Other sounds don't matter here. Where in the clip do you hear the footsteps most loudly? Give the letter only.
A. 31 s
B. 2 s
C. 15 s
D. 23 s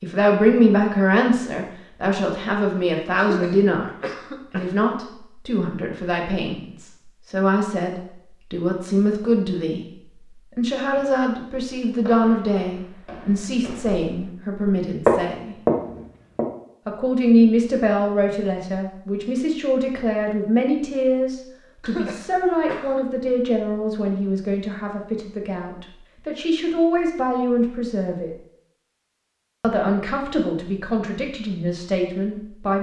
C.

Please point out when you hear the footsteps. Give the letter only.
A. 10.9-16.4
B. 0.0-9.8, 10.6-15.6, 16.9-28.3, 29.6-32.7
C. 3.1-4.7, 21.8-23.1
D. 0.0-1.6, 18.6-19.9
A.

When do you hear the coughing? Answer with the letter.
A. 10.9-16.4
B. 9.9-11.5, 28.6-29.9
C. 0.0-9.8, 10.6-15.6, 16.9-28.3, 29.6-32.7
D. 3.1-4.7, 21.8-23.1
D.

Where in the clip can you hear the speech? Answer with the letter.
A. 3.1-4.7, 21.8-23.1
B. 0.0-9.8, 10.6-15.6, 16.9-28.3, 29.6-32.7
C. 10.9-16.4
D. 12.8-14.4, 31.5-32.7
B.